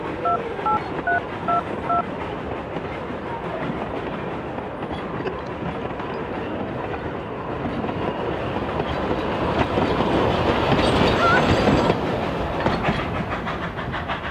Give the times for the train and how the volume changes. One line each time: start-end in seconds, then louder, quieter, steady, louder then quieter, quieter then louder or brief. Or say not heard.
0.0-14.2 louder.